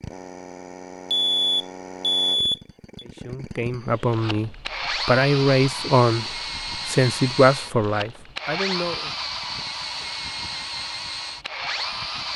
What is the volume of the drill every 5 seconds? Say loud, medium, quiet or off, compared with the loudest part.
medium, loud, loud.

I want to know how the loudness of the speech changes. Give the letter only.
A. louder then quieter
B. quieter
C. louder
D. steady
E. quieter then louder
A.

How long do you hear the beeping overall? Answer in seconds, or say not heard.
2 s.